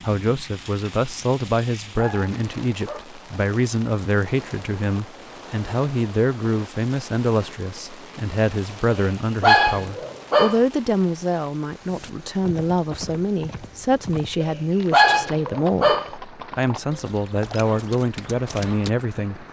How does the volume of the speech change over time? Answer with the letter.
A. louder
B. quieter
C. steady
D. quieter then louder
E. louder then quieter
C.